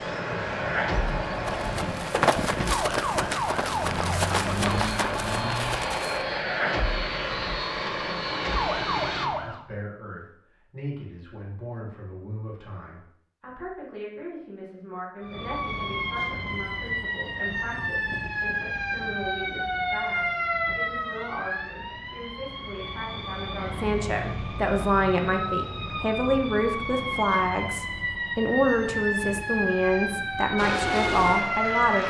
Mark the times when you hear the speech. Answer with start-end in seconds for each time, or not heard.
9.4-32.0.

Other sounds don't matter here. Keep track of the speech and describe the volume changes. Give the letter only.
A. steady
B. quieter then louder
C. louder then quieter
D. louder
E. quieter
D.